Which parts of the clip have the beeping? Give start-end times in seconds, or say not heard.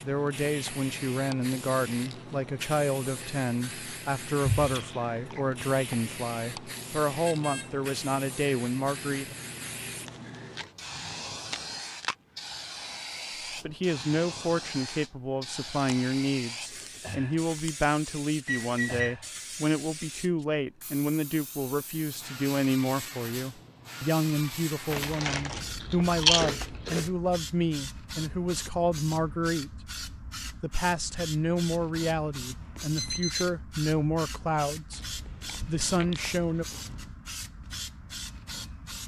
7.2-7.8, 18.4-19.1, 32.8-33.5.